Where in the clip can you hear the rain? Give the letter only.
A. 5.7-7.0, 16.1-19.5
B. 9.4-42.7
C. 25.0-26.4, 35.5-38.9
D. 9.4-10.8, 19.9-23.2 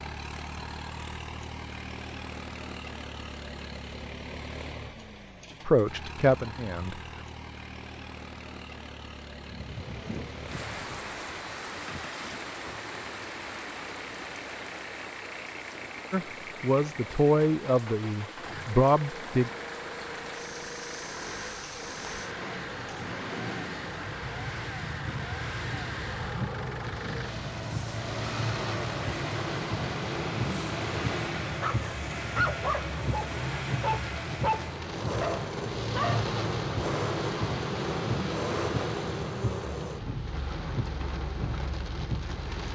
B.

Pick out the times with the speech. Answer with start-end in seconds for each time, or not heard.
5.7-7.0, 16.1-19.5.